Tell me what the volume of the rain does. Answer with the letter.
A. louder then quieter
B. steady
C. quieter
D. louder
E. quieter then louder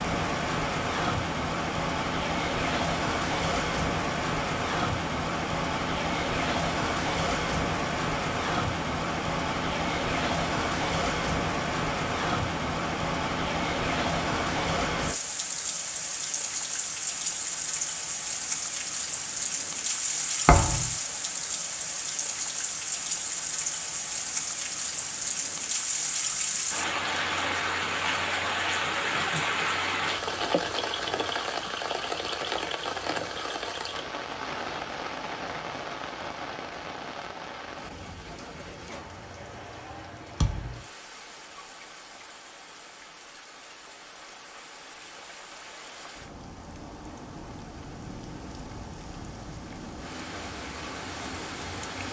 C.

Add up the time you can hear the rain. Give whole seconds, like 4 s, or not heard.
52 s.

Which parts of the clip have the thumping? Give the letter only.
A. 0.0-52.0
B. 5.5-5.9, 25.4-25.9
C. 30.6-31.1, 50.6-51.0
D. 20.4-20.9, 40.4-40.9
D.